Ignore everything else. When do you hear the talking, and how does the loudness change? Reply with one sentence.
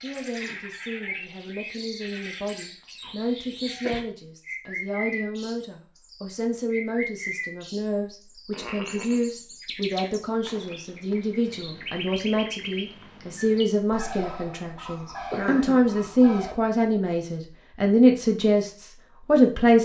The talking can be heard from 0.0 to 19.8 s, getting louder.